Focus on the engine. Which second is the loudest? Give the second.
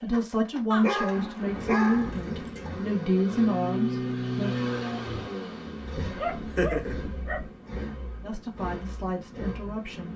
4 s.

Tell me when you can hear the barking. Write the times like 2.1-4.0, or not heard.
0.7-2.7, 6.0-7.5.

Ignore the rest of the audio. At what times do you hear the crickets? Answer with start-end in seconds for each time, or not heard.
not heard.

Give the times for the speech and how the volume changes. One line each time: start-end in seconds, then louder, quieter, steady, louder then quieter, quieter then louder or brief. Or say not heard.
0.0-4.5 steady
8.2-10.1 brief.